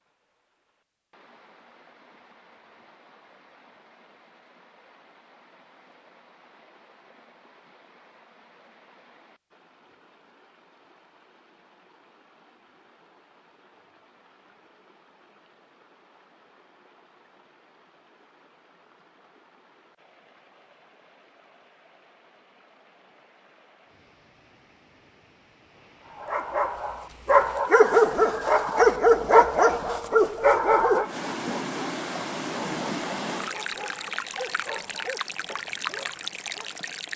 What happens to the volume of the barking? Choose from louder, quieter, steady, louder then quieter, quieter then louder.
quieter.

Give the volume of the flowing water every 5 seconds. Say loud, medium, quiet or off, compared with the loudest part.
quiet, quiet, quiet, quiet, quiet, quiet, loud, loud.